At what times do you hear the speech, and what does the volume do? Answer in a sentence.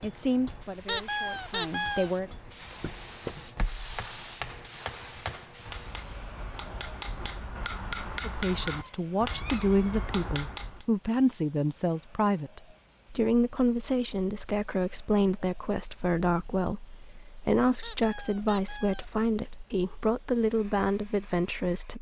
The speech can be heard briefly from 0.0 to 2.3 s; and from 8.2 to 21.9 s, at a steady volume.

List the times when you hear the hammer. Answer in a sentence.
You can hear the hammer from 0.0 to 10.8 s.